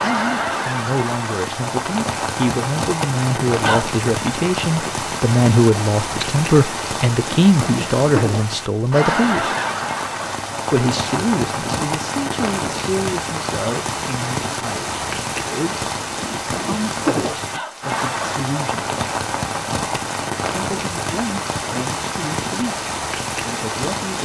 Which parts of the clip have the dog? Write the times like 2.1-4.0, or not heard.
not heard.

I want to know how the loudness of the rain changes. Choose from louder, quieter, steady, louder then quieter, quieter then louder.
steady.